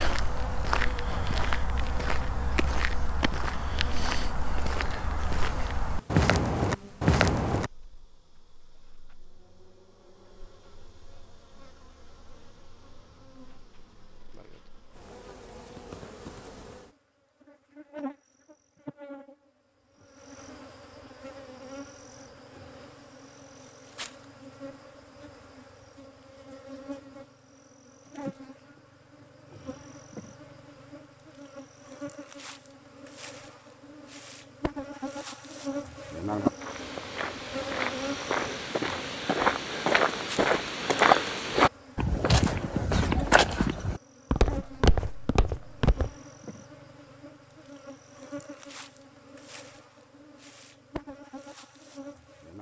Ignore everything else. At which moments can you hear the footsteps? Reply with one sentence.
The footsteps can be heard from 0.0 to 7.7 s and from 36.5 to 46.1 s.